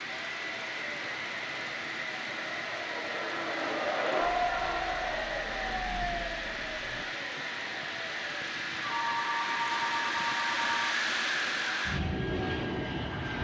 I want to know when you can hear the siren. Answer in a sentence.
The siren can be heard from 4.4 to 7.0 s.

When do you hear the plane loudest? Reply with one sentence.
The loudest moment of the plane is at 11 seconds.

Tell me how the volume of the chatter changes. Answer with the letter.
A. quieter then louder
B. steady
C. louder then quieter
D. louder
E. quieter
C.